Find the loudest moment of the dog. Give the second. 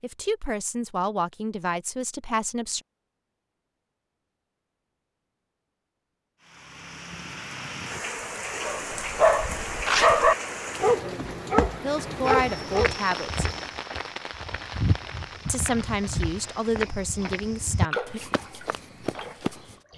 10 s.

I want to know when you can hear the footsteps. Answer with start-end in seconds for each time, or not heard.
10.7-19.8.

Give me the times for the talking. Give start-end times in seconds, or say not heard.
0.0-2.8, 11.8-13.4, 15.4-18.2.